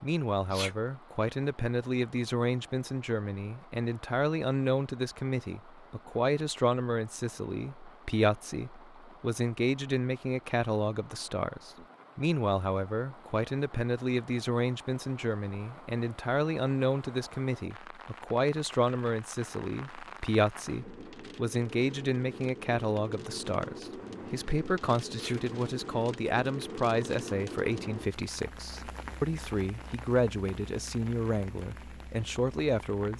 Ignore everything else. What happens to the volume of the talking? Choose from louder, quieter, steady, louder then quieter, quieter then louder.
steady.